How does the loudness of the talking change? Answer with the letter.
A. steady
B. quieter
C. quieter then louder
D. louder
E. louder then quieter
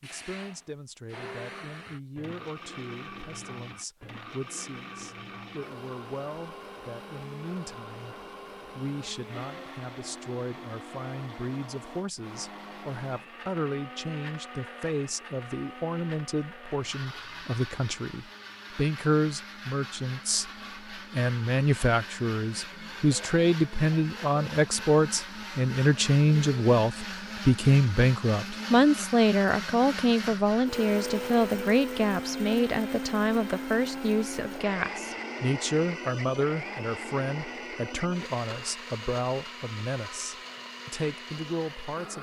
E.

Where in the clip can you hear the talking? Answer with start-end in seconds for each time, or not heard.
0.0-42.1.